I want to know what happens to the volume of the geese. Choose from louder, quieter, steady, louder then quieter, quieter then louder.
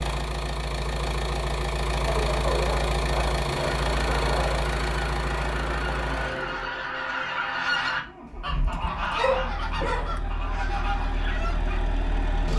louder then quieter.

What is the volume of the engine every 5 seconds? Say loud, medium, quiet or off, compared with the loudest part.
loud, medium, medium.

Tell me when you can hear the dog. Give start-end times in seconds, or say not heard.
2.0-4.7, 8.9-10.3.